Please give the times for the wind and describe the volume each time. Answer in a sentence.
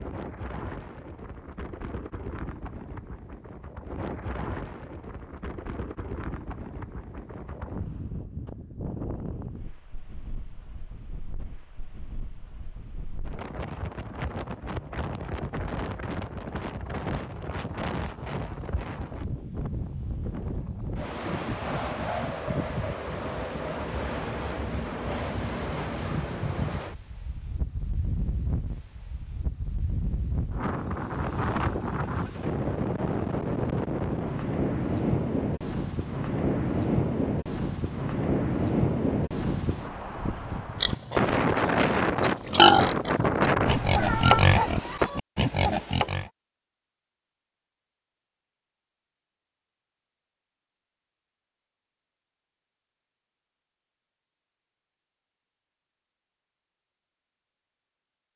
You can hear the wind from 0.0 to 45.1 s, getting louder.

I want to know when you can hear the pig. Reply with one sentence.
The pig can be heard from 40.5 to 46.3 s.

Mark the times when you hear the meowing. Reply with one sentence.
You can hear the meowing from 43.6 to 44.5 s.